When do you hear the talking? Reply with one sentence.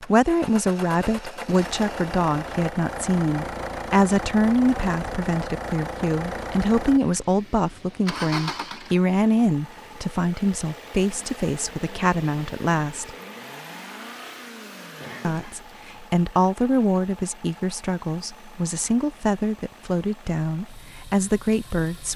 You can hear the talking from 0.0 to 13.1 s and from 15.2 to 22.1 s.